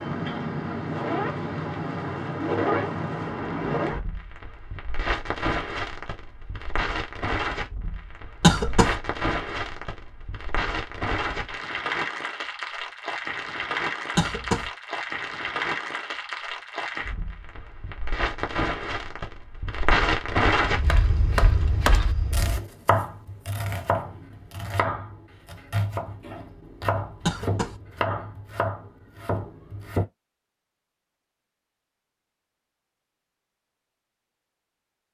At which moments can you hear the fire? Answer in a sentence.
You can hear the fire from 0.0 to 22.6 s.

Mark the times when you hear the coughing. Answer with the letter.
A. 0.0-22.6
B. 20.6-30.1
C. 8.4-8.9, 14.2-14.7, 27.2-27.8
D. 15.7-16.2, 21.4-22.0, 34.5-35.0
C.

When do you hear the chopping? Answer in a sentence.
The chopping can be heard from 20.6 to 30.1 s.